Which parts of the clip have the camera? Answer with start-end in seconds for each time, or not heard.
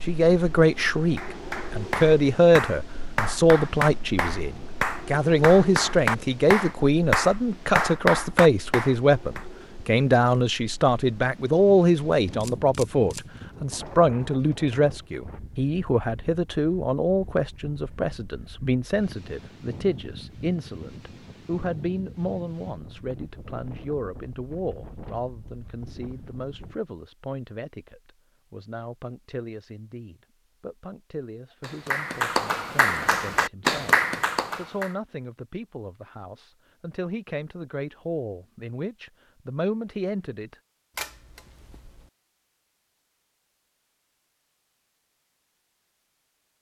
12.4-13.2, 41.0-42.1.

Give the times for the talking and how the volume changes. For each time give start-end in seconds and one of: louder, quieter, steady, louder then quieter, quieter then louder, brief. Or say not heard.
0.0-34.0 quieter
34.5-40.5 louder.